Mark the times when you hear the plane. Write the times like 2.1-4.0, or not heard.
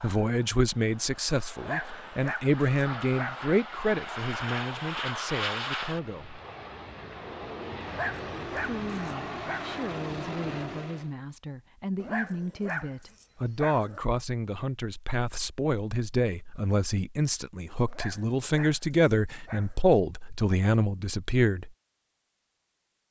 0.0-11.1.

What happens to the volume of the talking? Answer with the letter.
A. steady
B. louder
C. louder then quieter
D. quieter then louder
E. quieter
D.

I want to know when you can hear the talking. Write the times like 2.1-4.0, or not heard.
0.0-6.4, 8.6-21.7.